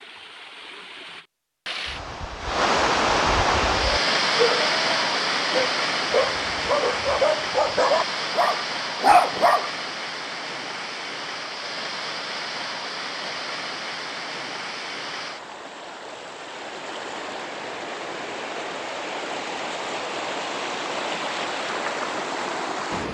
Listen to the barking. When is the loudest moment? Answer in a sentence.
The loudest moment of the barking is at 9 seconds.